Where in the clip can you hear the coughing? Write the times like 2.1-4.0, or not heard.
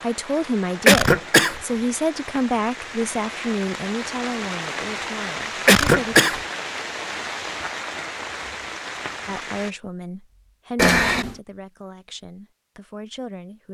0.8-1.6, 5.7-6.4, 10.8-11.3.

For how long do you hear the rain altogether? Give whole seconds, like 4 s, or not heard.
10 s.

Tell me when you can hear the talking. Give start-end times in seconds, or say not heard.
0.0-6.2, 9.2-13.6.